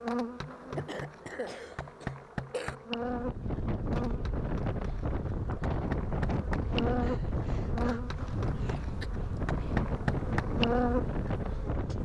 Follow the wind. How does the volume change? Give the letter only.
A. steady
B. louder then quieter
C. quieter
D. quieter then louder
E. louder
A.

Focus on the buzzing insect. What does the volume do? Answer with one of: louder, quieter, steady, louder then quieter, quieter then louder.
louder.